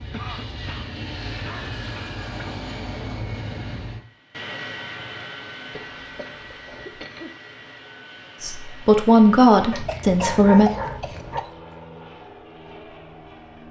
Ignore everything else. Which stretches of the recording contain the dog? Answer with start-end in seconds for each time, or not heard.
9.7-11.4.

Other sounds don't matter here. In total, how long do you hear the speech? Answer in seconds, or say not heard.
2 s.